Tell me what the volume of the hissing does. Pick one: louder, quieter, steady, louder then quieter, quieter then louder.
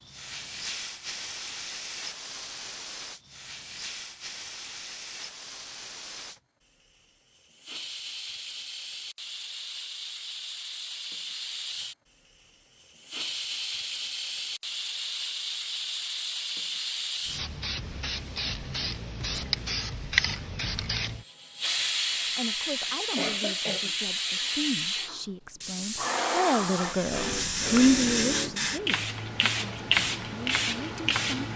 louder.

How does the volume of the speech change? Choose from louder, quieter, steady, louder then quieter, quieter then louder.
louder then quieter.